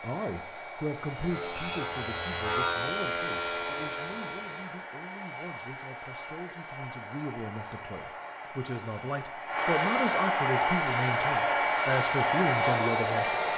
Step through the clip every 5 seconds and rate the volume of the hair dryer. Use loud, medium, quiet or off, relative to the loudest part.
quiet, medium, loud.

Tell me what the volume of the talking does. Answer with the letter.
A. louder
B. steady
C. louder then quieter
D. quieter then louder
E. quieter
D.